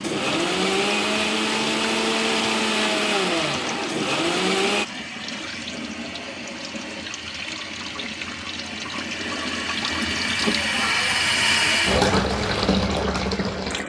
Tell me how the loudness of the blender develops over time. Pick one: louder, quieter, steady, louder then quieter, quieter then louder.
steady.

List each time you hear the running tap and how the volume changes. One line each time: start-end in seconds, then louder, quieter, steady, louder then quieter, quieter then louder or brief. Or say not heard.
0.0-13.8 louder.